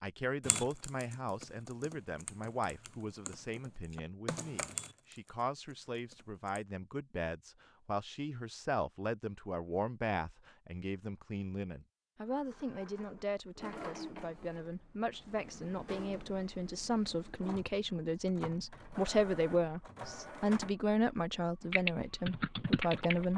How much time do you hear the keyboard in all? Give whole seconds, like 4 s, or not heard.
8 s.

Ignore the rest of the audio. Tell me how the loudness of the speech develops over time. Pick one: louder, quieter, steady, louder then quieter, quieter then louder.
louder.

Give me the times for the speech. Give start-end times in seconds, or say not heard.
0.0-23.3.